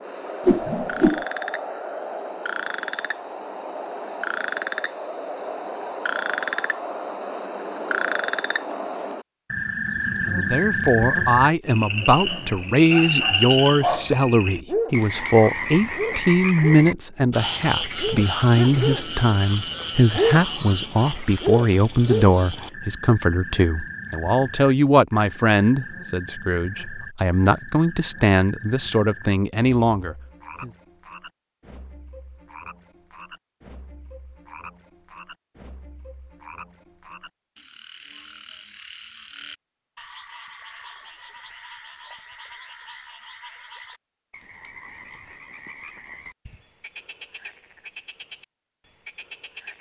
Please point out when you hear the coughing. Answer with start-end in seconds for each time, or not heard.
not heard.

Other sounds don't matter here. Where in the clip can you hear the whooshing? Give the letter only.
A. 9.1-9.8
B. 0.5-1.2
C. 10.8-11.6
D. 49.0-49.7
B.